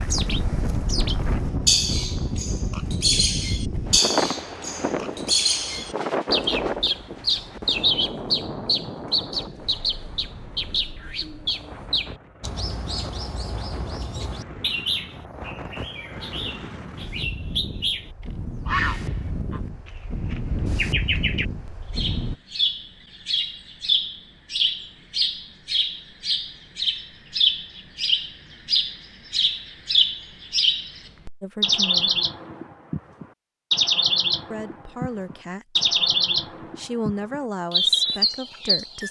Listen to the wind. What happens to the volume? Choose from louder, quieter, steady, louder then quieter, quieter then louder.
quieter then louder.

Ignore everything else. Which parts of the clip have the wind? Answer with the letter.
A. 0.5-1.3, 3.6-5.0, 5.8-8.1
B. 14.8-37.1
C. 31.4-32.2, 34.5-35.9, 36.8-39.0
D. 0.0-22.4
D.